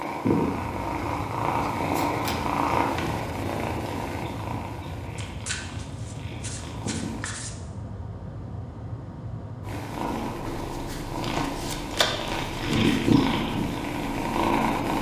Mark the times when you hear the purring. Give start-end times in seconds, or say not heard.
0.0-7.2, 9.6-14.9.